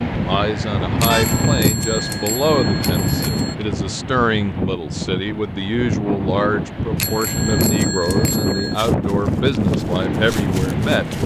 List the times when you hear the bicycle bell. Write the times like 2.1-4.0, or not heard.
1.0-3.5, 7.0-8.8.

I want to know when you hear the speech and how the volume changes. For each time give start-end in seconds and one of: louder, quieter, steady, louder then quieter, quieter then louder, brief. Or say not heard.
0.2-11.2 steady.